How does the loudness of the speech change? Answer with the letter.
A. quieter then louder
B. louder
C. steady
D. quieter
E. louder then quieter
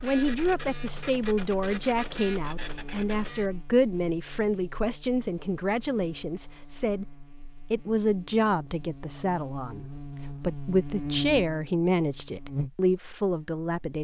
C.